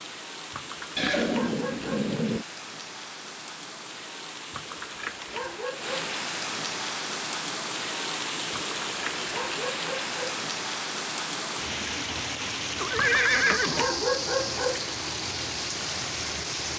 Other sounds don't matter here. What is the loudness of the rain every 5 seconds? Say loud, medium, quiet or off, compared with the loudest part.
medium, loud, loud, loud.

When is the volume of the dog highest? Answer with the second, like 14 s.
14 s.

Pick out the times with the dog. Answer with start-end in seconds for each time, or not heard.
0.5-2.1, 4.5-6.1, 8.5-10.4, 12.9-14.9.